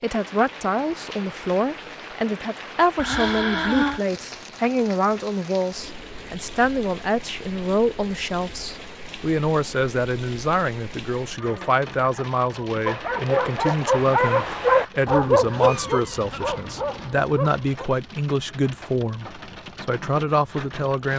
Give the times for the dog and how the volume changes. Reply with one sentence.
You can hear the dog from 11.3 to 17.9 s, getting louder then quieter.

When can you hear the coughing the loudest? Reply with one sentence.
The volume of the coughing peaks at 4 seconds.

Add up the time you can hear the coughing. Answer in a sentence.
The coughing can be heard for 2 seconds in total.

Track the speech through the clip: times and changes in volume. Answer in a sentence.
You can hear the speech from 0.0 to 21.1 s, at a steady volume.